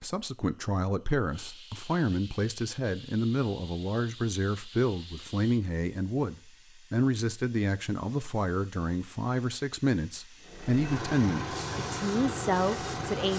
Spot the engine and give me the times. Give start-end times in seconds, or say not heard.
10.4-13.3.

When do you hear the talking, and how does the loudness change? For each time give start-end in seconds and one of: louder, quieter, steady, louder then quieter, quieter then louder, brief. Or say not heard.
0.0-13.3 steady.